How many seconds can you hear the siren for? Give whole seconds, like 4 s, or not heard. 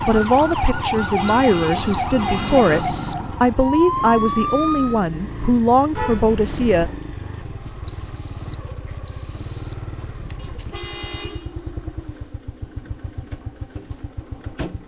5 s.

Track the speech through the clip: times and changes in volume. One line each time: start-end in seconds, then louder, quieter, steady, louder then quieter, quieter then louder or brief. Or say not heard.
0.1-6.9 steady.